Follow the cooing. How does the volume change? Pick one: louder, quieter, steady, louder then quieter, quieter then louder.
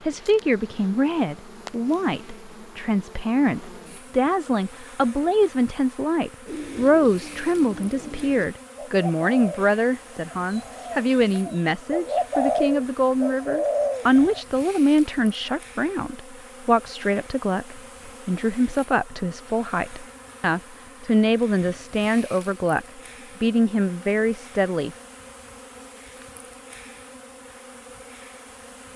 louder.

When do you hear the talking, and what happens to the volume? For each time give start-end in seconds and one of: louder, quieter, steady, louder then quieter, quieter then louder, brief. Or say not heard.
0.1-24.9 steady.